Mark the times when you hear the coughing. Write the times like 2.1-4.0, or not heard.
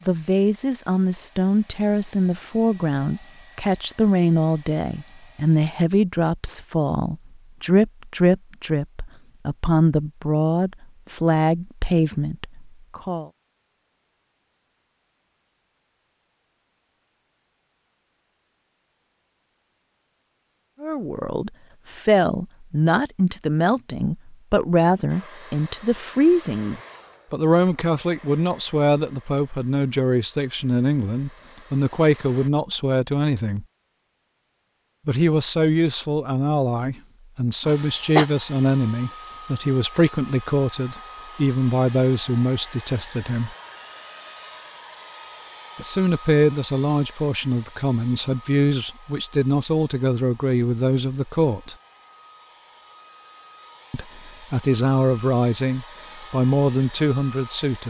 37.6-38.2.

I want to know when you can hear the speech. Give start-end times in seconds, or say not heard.
0.1-13.3, 20.8-33.6, 35.0-43.5, 45.8-51.8, 53.9-57.8.